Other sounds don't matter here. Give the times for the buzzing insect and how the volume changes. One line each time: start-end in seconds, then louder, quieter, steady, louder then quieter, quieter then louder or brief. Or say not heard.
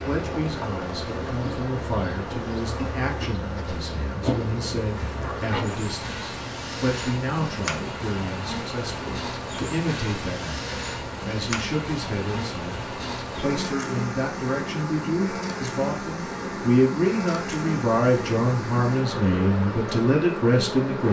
0.0-21.0 steady.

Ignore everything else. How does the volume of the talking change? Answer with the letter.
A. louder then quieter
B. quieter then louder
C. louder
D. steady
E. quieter
C.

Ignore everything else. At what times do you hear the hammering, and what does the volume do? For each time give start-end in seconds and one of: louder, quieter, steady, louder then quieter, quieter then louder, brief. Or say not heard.
not heard.